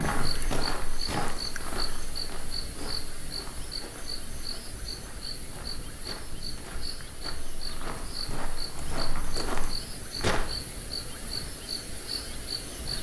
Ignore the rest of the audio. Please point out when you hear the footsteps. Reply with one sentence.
The footsteps can be heard from 0.0 to 10.4 s.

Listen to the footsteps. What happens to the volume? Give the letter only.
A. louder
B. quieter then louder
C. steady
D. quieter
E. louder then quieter
B.